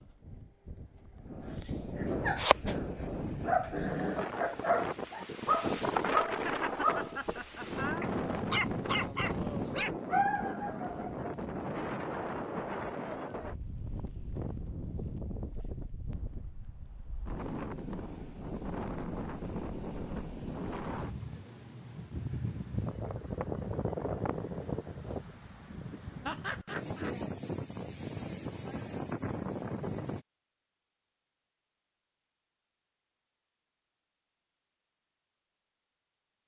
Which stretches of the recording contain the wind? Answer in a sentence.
The wind can be heard from 0.0 to 30.2 s.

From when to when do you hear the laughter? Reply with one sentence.
You can hear the laughter from 6.5 to 8.1 s and from 26.2 to 27.1 s.